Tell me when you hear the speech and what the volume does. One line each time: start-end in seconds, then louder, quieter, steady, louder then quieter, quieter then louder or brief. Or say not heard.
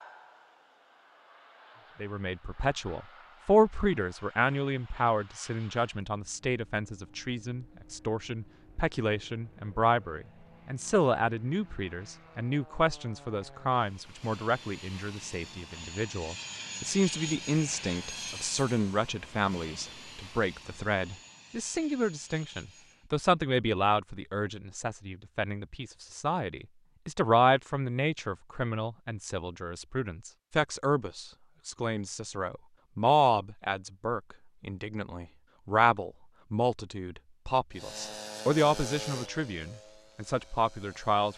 2.0-41.3 steady.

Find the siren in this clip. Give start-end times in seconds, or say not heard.
not heard.